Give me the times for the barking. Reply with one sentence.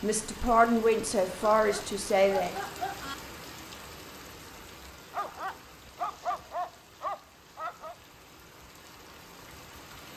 You can hear the barking from 1.6 to 3.1 s and from 5.1 to 8.0 s.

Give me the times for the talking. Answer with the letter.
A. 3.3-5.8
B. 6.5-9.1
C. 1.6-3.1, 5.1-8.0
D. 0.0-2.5
D.